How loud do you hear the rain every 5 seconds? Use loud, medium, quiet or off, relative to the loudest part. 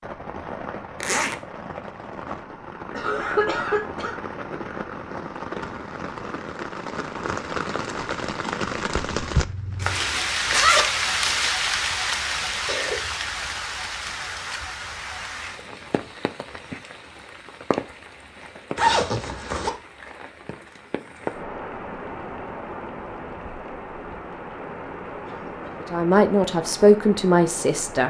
medium, loud, loud, medium, medium, medium.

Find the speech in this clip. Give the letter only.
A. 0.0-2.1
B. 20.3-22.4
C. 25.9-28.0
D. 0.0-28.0
C.